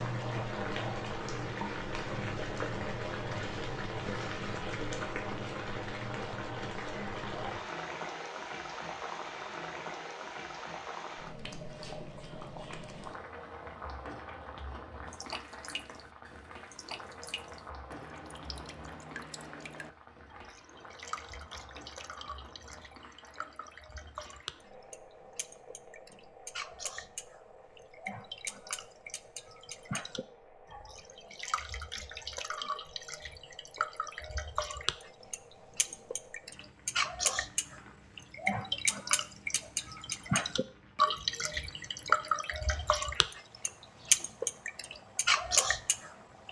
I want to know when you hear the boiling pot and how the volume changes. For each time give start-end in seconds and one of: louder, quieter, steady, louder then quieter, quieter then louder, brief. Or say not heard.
0.0-46.4 quieter.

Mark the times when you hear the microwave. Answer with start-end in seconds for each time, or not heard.
not heard.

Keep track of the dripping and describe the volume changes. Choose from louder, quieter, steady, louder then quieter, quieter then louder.
louder.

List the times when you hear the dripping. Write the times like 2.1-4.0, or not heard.
15.1-46.4.